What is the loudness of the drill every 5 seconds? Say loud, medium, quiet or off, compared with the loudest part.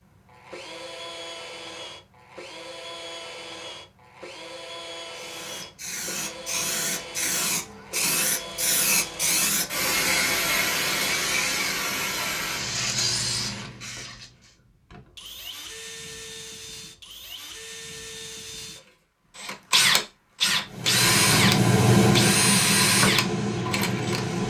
quiet, quiet, quiet, medium, loud.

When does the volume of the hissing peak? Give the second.
22 s.